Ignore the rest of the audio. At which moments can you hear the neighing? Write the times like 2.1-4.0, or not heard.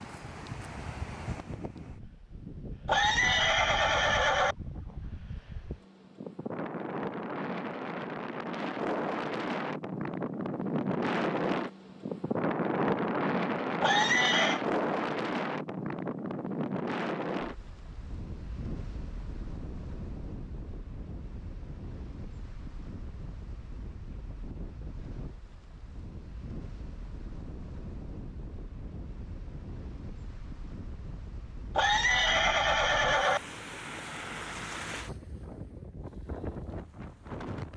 2.9-4.5, 13.8-14.6, 31.8-33.4.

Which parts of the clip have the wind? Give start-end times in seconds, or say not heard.
0.0-37.7.